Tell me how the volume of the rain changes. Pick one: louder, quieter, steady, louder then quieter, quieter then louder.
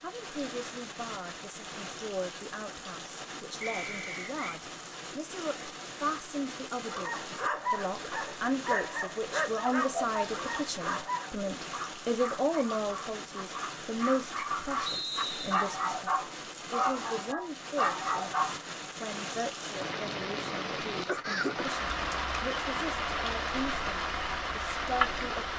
louder.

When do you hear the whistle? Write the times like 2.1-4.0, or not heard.
3.6-4.6, 14.8-15.7.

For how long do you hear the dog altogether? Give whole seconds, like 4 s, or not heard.
12 s.